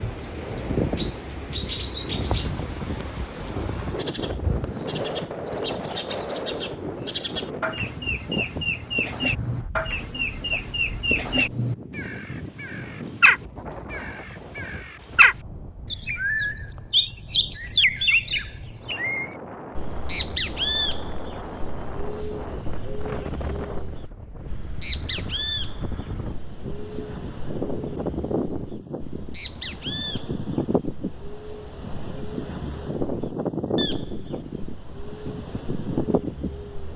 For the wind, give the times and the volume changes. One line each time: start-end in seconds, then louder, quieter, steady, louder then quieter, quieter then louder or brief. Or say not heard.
0.0-36.9 quieter then louder.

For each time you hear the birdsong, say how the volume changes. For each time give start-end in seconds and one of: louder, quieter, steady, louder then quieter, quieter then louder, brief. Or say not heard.
0.0-36.9 louder then quieter.